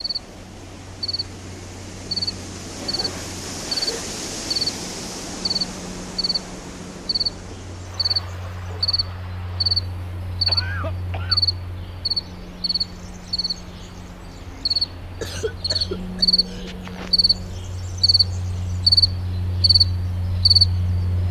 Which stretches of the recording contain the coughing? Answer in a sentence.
The coughing can be heard from 2.8 to 4.0 s, from 10.4 to 11.4 s and from 15.2 to 17.1 s.